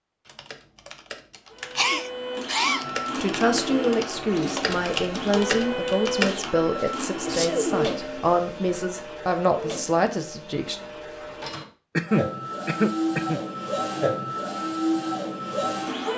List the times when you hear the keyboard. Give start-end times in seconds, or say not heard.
0.2-6.5.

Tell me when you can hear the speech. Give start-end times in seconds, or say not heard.
3.2-10.8.